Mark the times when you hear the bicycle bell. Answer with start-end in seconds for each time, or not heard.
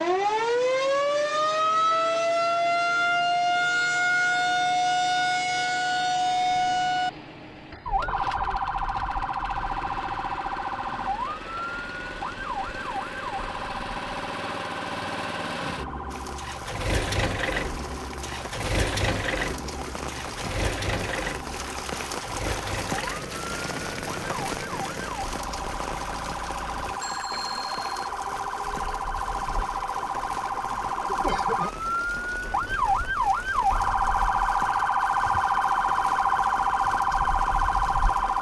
27.0-28.1.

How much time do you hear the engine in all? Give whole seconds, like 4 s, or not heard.
38 s.